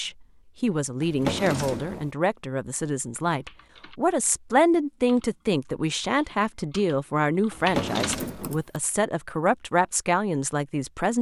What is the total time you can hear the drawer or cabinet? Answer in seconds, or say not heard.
2 s.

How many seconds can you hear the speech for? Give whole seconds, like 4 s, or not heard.
11 s.